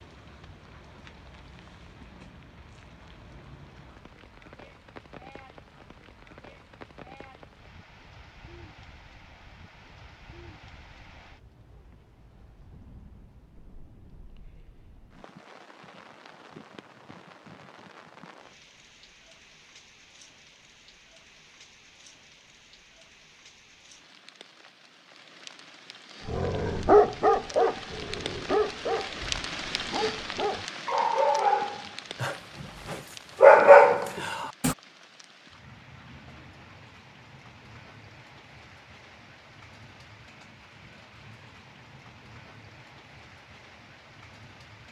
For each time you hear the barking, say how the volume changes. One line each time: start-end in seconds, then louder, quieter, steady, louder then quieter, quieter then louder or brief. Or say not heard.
26.2-34.8 quieter then louder.